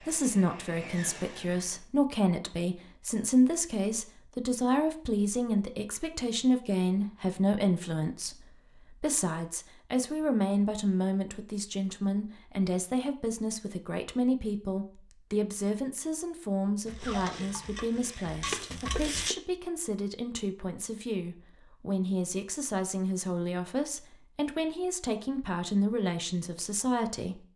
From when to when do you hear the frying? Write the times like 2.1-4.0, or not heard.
16.9-19.4.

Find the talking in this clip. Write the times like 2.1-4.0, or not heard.
0.1-27.4.